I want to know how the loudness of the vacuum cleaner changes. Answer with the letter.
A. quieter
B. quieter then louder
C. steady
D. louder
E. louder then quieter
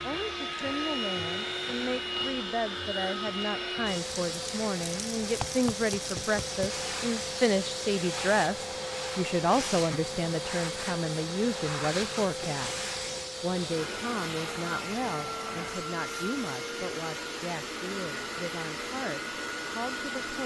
C.